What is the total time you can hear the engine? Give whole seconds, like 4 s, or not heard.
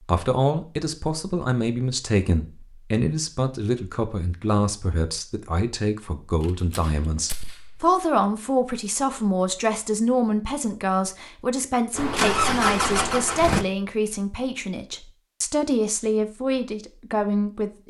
2 s.